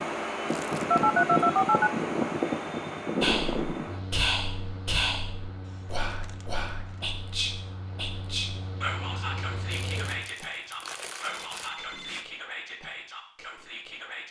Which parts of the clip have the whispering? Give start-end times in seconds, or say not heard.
3.2-14.2.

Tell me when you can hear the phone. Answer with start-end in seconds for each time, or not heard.
0.9-1.9, 11.2-12.2.